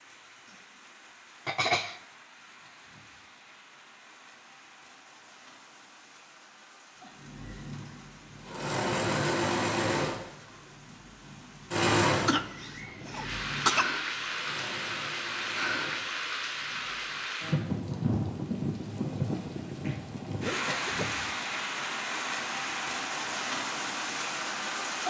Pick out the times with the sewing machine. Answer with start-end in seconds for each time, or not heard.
7.2-16.8.